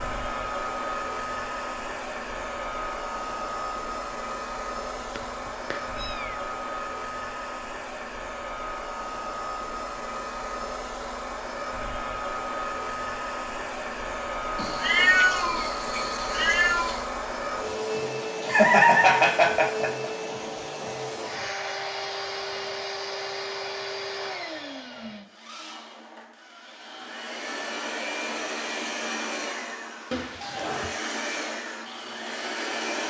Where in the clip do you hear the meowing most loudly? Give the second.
15 s.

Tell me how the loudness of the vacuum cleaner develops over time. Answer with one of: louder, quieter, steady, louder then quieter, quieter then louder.
steady.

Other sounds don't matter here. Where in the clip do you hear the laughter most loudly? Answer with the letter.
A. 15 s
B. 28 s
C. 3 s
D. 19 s
D.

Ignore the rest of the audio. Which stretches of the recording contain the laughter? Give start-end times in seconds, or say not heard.
18.4-20.1.